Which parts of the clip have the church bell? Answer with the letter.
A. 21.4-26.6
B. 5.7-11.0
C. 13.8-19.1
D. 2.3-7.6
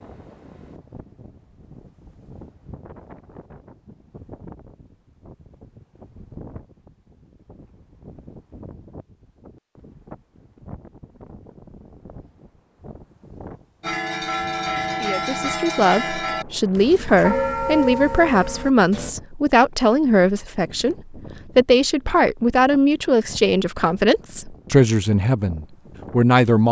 C.